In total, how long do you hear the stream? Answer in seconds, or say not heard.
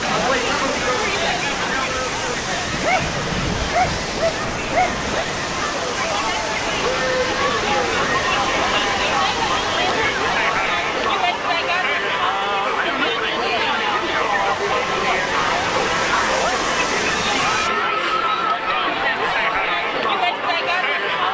18 s.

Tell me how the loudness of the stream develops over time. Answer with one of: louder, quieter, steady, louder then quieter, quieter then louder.
quieter then louder.